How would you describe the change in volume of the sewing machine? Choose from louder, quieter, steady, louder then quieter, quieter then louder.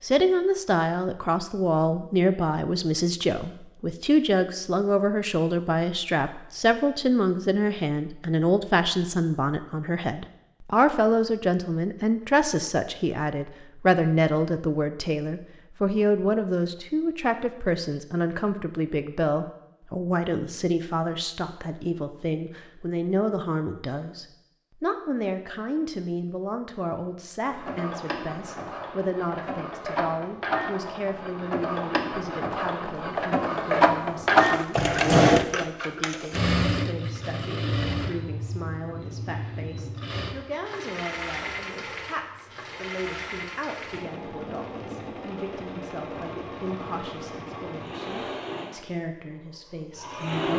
louder then quieter.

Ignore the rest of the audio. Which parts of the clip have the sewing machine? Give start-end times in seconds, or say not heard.
27.4-50.5.